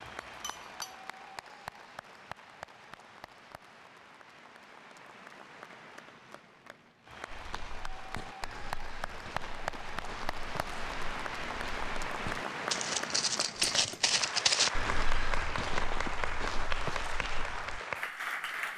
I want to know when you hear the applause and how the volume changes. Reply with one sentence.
The applause can be heard from 0.0 to 18.7 s, getting louder.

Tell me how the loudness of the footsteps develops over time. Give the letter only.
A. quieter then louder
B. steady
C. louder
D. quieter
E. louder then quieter
E.